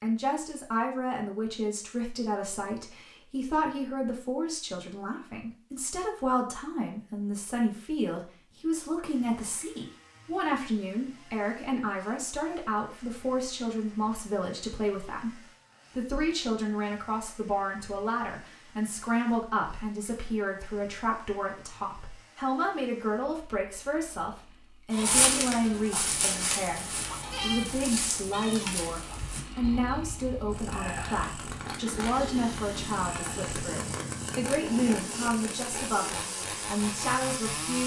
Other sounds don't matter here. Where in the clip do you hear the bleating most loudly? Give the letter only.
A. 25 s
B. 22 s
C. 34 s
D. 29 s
A.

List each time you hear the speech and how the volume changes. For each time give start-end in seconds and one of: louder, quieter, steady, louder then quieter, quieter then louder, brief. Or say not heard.
0.0-15.3 steady
15.9-37.8 steady.